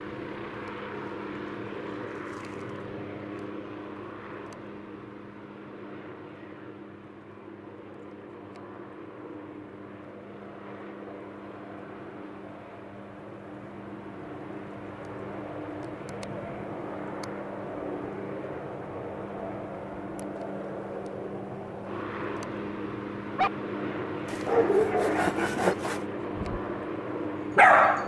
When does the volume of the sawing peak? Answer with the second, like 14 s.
26 s.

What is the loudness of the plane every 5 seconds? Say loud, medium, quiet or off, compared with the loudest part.
loud, medium, medium, loud, loud, loud.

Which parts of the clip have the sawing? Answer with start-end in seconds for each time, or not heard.
24.2-26.1.